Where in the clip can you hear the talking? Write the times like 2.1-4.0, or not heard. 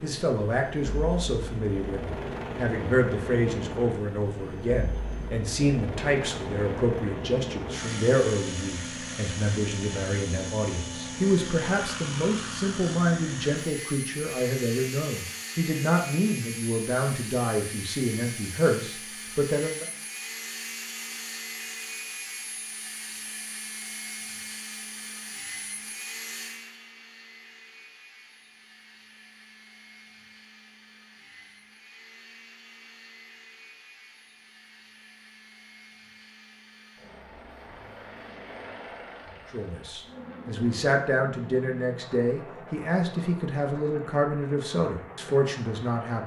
0.0-19.9, 39.5-46.2.